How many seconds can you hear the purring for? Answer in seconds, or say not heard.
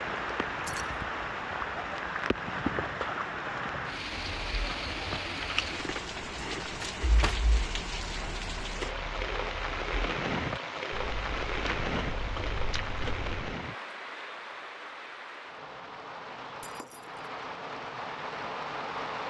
not heard.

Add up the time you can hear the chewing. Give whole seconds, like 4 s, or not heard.
9 s.